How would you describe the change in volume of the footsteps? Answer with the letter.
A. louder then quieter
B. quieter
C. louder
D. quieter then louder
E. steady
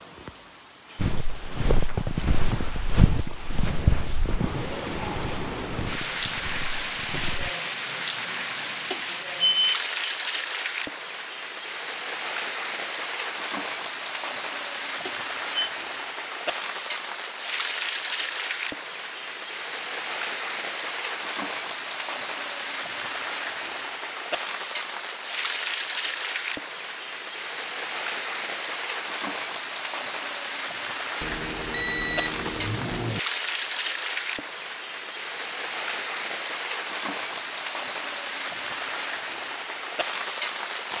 B.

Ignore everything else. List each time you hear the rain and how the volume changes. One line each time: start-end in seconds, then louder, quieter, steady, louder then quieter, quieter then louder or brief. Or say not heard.
0.0-40.9 steady.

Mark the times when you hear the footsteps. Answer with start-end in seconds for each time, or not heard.
0.9-7.5.